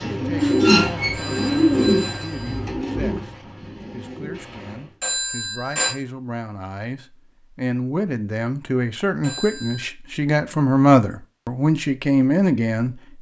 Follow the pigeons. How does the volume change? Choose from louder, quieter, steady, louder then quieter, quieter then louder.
quieter.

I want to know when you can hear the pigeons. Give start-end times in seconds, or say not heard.
0.0-5.0.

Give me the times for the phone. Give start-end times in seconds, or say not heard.
0.3-2.6, 5.0-6.0, 9.2-9.8.